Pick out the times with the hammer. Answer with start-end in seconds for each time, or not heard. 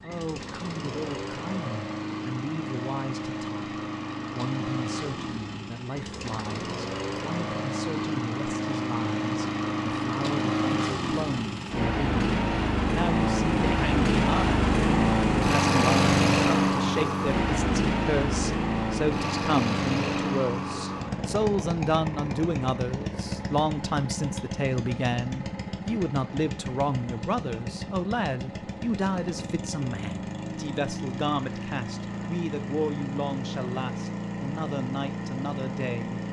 not heard.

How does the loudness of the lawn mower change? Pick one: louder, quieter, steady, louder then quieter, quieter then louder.
louder then quieter.